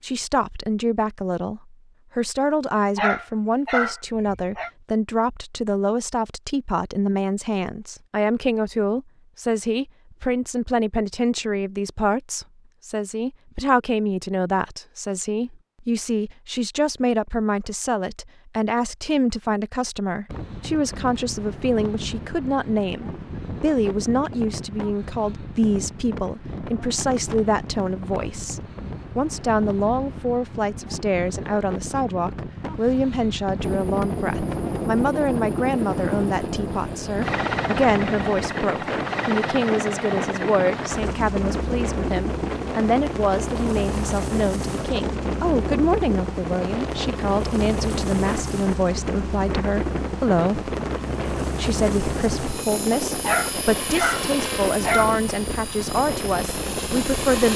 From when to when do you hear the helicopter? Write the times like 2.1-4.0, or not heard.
33.6-57.5.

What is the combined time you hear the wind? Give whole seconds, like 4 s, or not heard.
37 s.